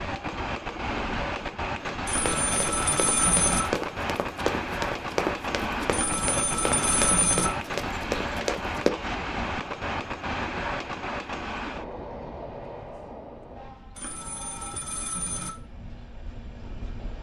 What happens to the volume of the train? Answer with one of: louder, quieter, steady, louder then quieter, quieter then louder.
quieter.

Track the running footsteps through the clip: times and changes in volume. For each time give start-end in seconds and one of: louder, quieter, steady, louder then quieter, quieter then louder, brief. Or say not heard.
2.1-8.9 steady.